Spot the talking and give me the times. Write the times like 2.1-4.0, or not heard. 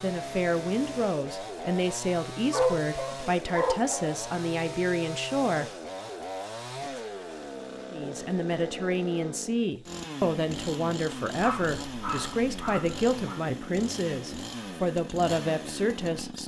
0.0-5.7, 7.9-16.4.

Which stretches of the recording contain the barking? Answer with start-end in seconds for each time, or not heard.
2.5-4.0, 11.4-13.4.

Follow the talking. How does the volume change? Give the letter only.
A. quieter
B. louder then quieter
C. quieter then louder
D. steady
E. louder
D.